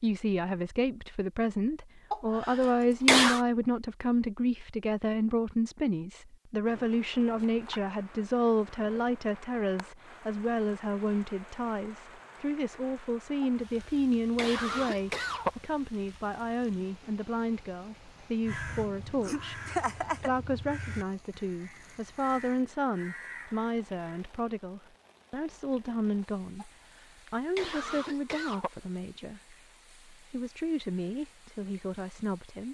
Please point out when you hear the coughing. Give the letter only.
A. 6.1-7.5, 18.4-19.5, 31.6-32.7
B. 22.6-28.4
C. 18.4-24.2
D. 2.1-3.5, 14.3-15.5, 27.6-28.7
D.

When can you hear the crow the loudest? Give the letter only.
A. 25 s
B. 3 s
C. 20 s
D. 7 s
C.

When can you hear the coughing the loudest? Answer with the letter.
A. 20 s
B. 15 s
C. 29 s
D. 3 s
D.